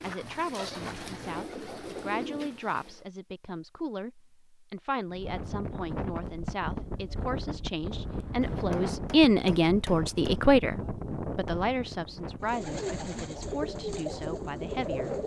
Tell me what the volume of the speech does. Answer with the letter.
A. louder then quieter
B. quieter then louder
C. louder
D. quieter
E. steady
A.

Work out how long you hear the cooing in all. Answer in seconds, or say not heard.
6 s.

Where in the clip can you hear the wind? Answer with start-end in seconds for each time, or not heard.
5.0-15.2.